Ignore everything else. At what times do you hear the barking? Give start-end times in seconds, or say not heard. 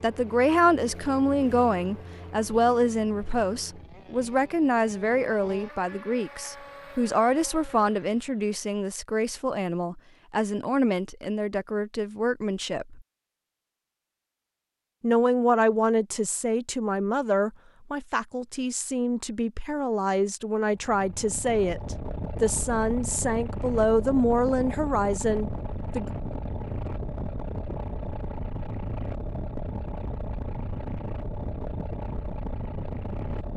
not heard.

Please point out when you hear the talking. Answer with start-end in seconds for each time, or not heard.
0.0-13.1, 15.0-26.1.